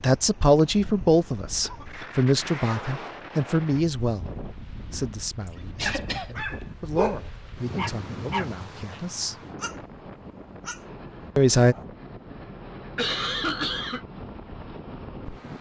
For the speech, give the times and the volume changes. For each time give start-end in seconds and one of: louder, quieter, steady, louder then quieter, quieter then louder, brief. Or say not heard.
0.0-9.3 quieter
11.3-11.8 brief.